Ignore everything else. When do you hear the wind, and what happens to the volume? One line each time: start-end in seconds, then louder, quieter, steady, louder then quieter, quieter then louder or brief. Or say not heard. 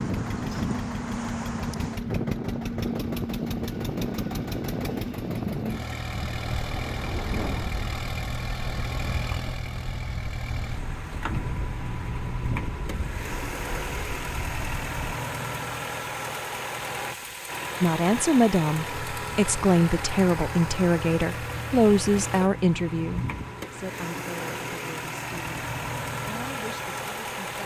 0.0-14.9 quieter.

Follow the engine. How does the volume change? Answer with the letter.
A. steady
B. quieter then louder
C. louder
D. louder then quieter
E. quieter
A.